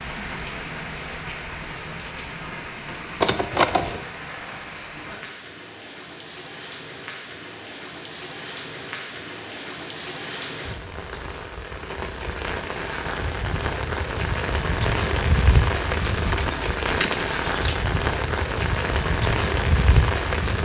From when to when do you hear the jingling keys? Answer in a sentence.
The jingling keys can be heard from 3.2 to 4.0 s and from 16.1 to 17.9 s.